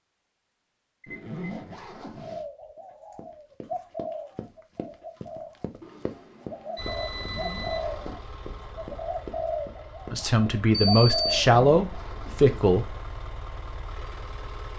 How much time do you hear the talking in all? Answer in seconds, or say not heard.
3 s.